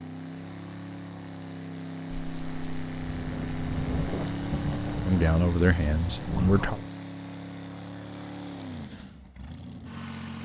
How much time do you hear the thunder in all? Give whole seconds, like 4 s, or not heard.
5 s.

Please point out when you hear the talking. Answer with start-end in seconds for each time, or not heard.
5.0-6.8.